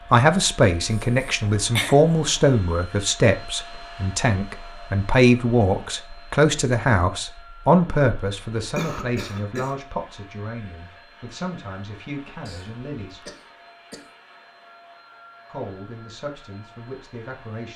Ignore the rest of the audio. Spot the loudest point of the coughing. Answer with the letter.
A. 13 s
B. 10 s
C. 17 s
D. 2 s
D.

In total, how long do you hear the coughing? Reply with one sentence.
The coughing can be heard for 4 seconds in total.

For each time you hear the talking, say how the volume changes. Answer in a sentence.
The talking can be heard from 0.1 to 13.2 s, getting quieter; and briefly from 15.5 to 17.7 s.